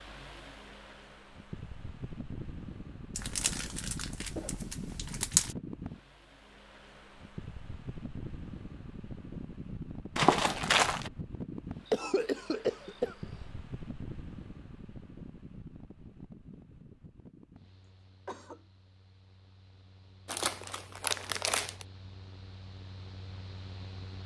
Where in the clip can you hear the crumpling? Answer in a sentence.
You can hear the crumpling from 3.1 to 5.5 s, from 10.2 to 11.1 s and from 20.2 to 21.9 s.